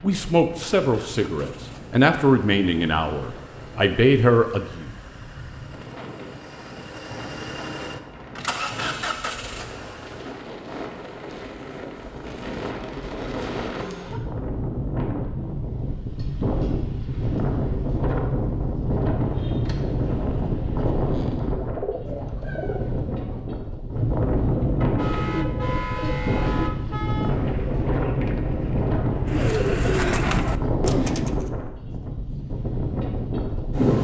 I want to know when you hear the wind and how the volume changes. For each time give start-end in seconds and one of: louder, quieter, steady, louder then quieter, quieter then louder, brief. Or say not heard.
0.0-34.0 louder.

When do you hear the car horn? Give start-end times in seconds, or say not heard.
24.8-27.4.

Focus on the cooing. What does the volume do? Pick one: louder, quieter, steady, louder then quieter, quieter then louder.
louder.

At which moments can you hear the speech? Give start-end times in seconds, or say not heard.
0.0-4.8.